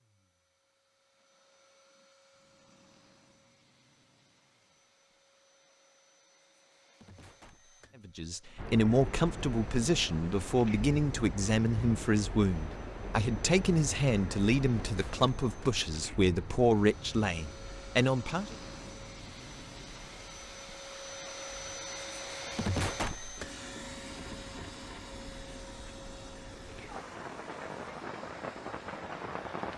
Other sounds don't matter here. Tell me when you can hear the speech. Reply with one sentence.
You can hear the speech from 8.1 to 18.6 s.